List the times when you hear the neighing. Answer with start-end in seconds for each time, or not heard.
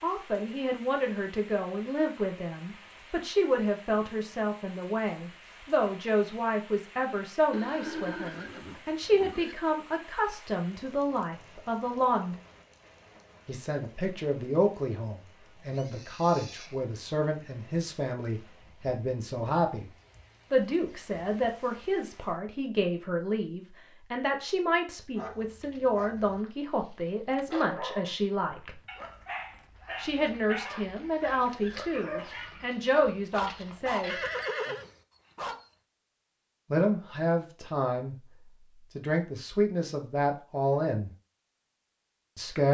7.5-9.6, 15.6-16.9, 34.0-34.9.